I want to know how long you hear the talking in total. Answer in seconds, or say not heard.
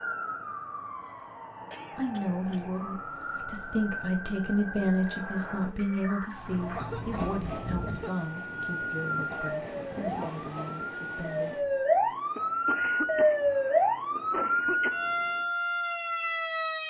10 s.